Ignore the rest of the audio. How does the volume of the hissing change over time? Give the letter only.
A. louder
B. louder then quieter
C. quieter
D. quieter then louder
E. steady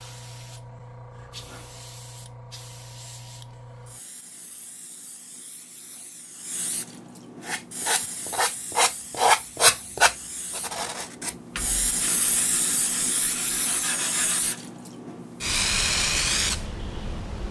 A.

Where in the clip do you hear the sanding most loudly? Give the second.
9 s.